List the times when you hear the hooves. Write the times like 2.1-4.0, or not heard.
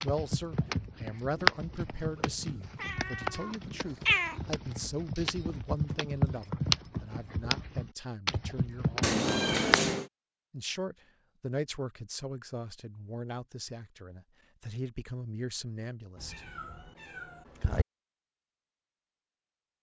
0.0-9.9.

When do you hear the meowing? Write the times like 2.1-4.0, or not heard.
1.9-4.4, 9.0-10.1, 16.1-17.9.